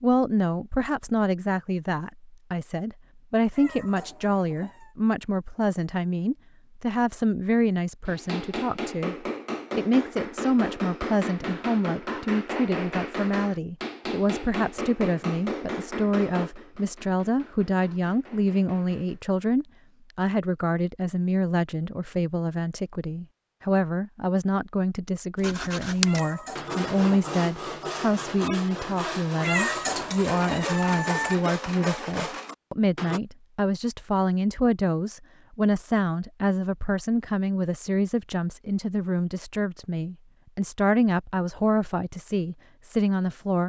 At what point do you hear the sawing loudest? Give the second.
26 s.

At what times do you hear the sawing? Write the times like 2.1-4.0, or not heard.
25.4-33.2.